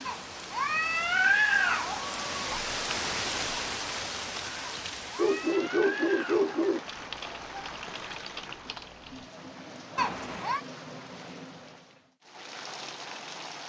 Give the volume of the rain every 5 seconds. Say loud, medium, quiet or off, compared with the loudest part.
loud, medium, medium.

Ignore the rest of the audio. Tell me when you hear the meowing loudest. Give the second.
1 s.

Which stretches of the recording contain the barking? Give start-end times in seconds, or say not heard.
5.2-6.8.